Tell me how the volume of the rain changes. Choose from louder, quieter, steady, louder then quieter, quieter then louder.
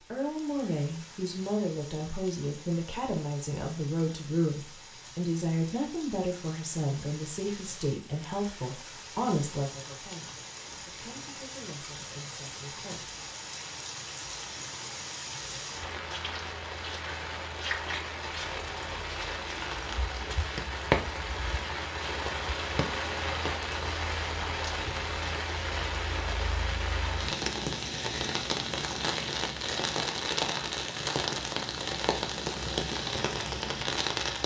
louder.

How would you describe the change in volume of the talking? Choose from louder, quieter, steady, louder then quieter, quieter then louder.
quieter.